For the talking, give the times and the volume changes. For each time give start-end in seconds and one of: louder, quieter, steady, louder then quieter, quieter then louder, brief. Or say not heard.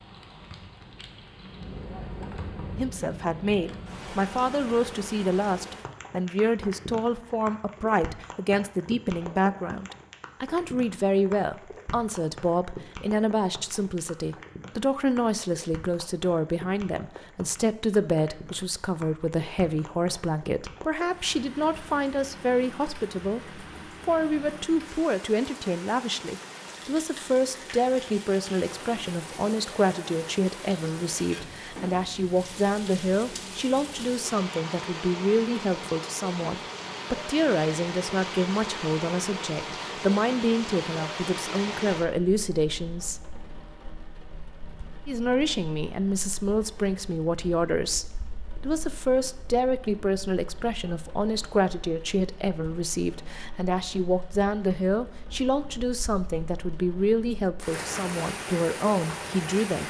2.8-43.2 steady
45.0-59.8 steady.